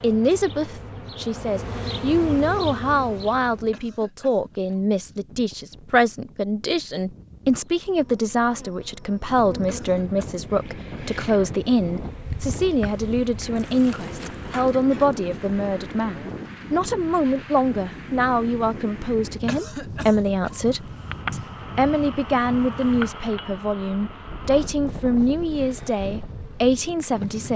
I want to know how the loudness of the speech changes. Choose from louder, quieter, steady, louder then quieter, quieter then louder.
steady.